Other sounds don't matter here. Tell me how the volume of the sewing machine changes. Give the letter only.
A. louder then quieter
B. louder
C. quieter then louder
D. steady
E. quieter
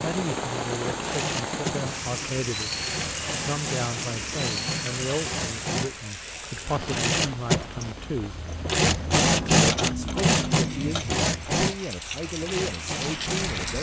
A.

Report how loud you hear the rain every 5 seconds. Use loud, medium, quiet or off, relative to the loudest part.
loud, medium, medium.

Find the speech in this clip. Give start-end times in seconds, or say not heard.
0.0-8.3, 9.4-13.7.